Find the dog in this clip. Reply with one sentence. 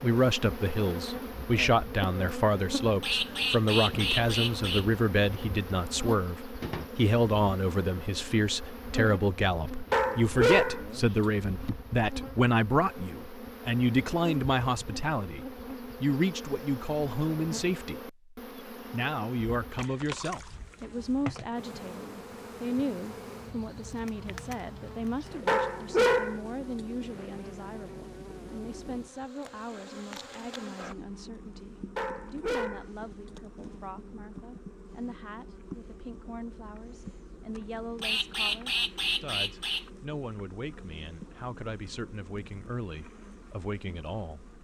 The dog can be heard from 9.9 to 10.8 s, from 25.4 to 26.4 s and from 31.9 to 32.9 s.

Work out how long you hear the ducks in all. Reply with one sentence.
The ducks can be heard for 4 seconds in total.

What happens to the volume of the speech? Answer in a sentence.
The loudness of the speech goes down.